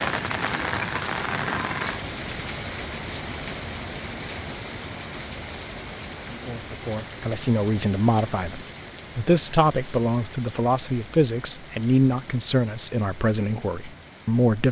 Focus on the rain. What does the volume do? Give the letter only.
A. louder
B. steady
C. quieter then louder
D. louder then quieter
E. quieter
E.